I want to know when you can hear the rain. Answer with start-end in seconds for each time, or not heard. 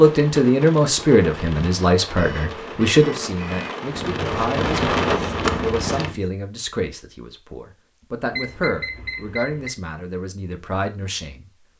0.0-6.2.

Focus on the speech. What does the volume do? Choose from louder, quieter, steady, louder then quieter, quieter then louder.
quieter.